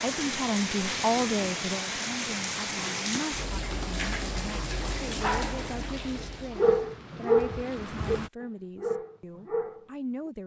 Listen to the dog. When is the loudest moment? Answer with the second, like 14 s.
7 s.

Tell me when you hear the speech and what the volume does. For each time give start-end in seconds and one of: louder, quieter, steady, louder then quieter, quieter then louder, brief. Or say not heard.
0.0-10.4 quieter.